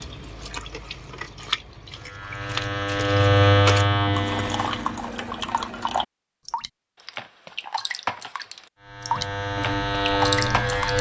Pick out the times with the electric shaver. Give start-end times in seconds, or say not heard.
1.9-5.2, 8.8-10.9.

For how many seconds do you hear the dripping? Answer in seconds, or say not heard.
11 s.